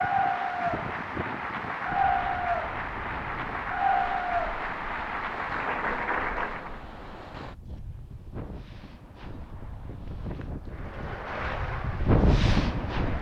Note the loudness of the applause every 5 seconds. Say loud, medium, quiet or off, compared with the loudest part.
loud, loud, medium.